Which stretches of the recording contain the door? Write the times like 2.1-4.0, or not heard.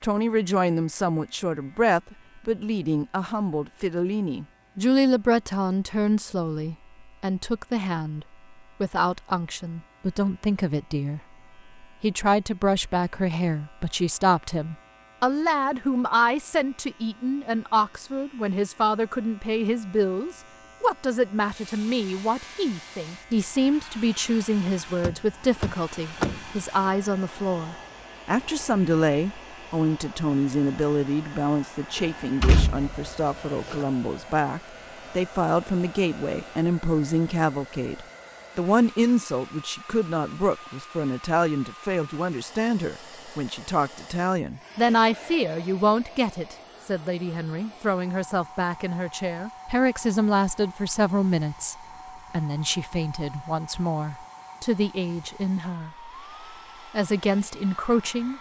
25.0-26.4, 31.9-33.9.